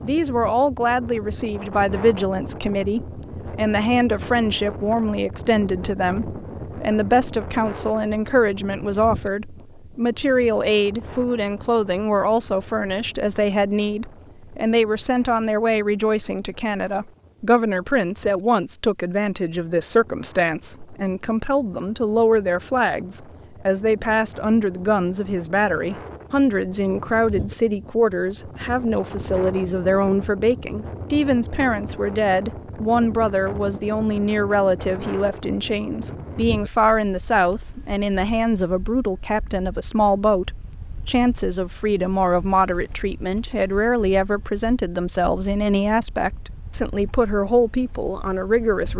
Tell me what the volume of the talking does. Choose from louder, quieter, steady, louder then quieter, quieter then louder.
steady.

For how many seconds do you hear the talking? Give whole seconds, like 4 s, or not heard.
49 s.